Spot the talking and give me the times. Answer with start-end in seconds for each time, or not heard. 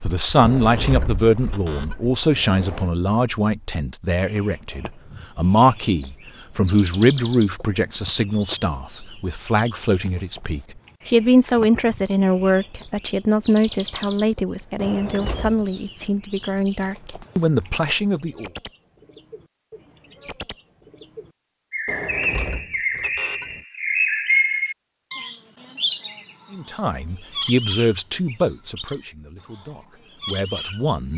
0.0-18.5, 26.5-31.1.